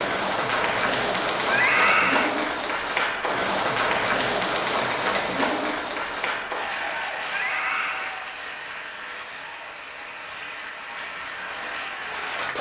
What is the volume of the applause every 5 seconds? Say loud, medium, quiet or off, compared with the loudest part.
loud, medium, medium.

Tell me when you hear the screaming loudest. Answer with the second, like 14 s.
2 s.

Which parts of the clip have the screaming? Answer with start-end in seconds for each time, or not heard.
1.4-2.3, 7.2-8.2.